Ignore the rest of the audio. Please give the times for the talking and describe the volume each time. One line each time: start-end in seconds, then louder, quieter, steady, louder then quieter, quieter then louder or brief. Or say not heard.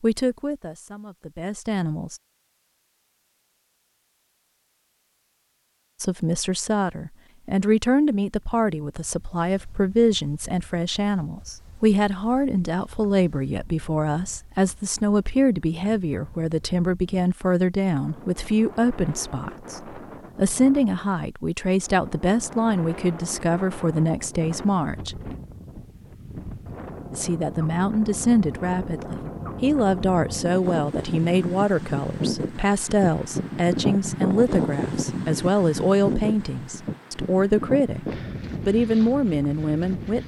0.0-2.2 brief
6.0-25.4 steady
27.1-40.2 steady.